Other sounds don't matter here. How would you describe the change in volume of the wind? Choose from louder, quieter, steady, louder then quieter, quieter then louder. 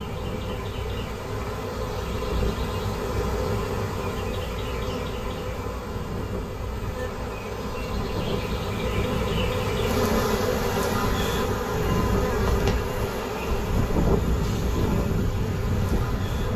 louder.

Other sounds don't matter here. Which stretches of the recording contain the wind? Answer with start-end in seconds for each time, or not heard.
0.0-16.5.